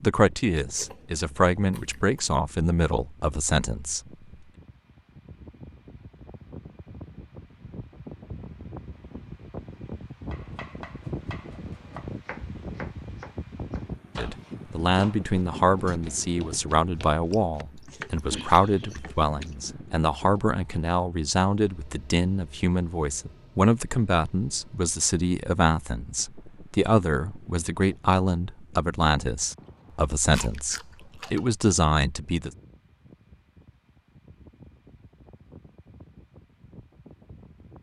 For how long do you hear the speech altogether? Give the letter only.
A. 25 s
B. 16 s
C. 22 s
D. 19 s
C.